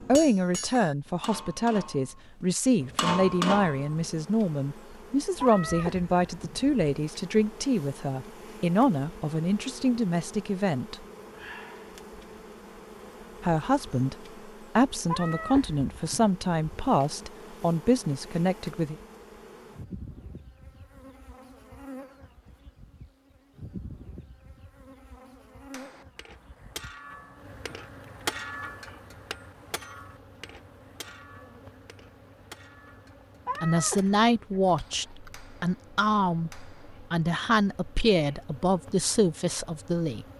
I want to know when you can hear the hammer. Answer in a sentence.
You can hear the hammer from 0.0 to 4.0 s and from 25.7 to 37.1 s.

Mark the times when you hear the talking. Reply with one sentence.
The talking can be heard from 0.0 to 10.9 s, from 13.4 to 14.2 s, from 14.8 to 18.9 s and from 33.6 to 40.2 s.